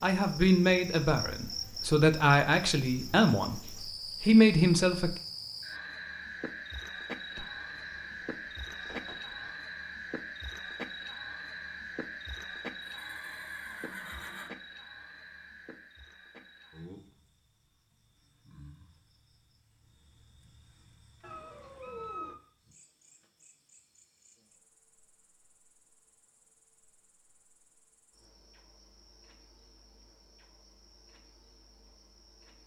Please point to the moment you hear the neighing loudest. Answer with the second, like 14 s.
14 s.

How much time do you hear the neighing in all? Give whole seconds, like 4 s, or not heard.
2 s.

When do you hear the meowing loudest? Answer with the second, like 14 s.
22 s.